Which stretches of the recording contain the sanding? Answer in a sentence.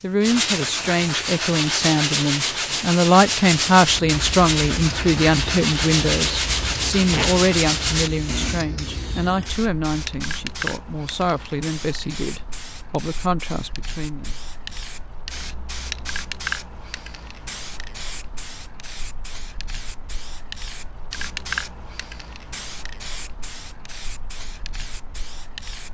The sanding can be heard from 0.2 to 8.6 s.